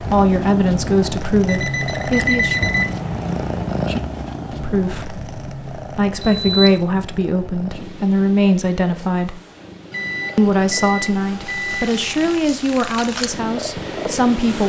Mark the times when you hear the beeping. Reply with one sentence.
The beeping can be heard from 1.4 to 2.9 s, from 6.2 to 6.8 s and from 9.9 to 12.4 s.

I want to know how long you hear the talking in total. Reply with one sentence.
The talking can be heard for 12 seconds in total.